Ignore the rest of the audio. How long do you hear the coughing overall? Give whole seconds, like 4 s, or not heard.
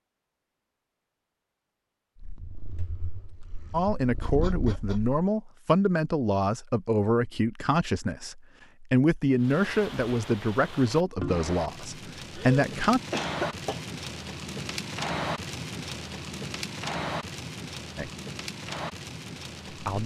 2 s.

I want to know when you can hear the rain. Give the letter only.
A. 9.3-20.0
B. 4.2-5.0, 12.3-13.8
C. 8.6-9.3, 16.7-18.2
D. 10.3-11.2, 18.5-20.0
A.